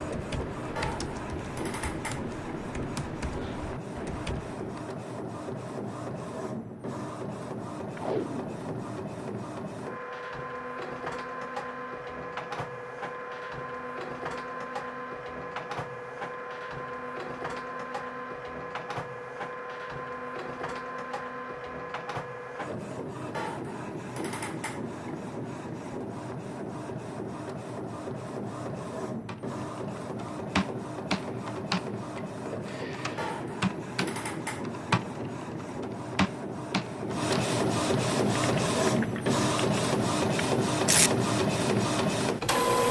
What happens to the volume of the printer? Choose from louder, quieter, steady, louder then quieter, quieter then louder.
louder.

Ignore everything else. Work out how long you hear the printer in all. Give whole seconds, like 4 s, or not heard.
43 s.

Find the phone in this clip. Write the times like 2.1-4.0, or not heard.
not heard.